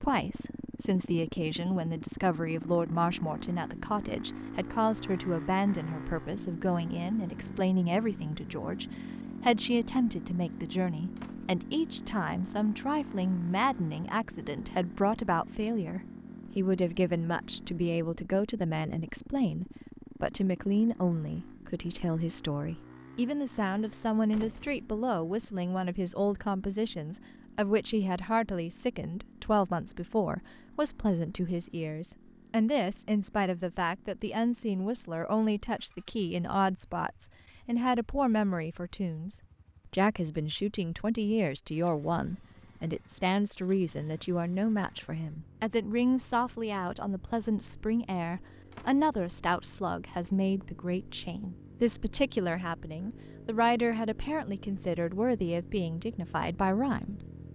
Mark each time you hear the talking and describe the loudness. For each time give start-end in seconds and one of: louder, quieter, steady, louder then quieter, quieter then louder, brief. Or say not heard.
0.0-57.2 steady.